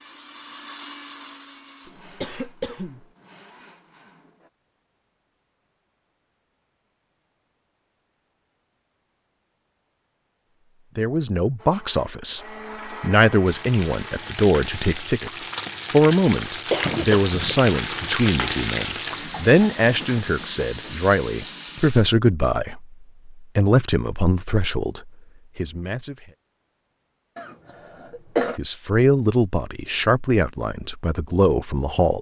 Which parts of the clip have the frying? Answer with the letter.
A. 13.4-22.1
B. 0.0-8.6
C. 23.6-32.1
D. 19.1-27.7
A.